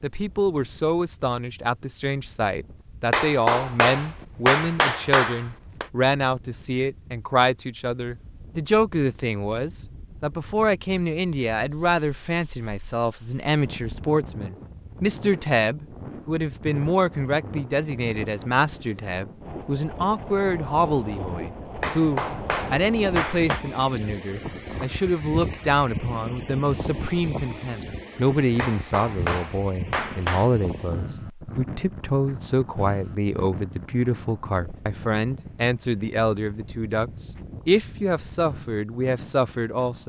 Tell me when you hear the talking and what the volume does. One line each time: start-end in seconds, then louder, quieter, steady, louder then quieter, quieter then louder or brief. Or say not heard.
0.0-40.0 steady.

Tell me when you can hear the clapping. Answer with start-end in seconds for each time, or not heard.
3.1-5.8, 21.8-23.6, 28.6-30.5.